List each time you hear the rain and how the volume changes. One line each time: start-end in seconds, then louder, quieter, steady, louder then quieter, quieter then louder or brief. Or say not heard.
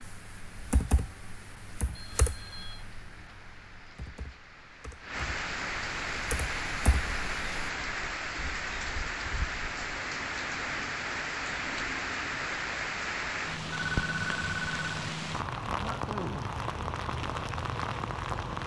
0.0-18.6 louder.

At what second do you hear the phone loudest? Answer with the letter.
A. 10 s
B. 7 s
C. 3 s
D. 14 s
D.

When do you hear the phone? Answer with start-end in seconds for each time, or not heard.
1.9-2.9, 13.8-14.9.